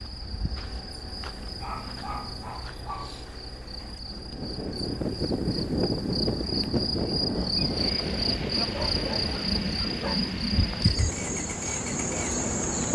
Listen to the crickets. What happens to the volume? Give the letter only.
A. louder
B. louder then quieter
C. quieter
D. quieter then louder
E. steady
A.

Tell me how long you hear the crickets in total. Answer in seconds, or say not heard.
13 s.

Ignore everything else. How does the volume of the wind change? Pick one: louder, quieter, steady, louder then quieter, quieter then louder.
quieter.